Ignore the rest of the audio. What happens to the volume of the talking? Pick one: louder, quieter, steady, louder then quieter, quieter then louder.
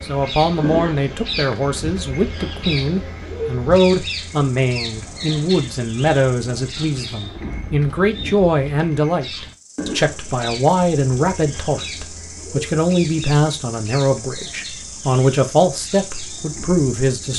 steady.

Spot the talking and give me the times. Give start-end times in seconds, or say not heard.
0.0-17.3.